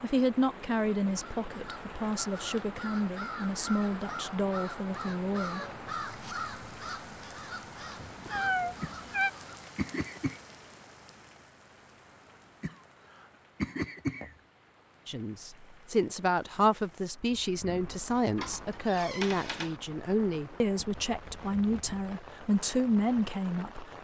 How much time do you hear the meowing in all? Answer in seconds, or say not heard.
3 s.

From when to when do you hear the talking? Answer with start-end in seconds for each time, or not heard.
0.0-5.6, 15.1-23.9.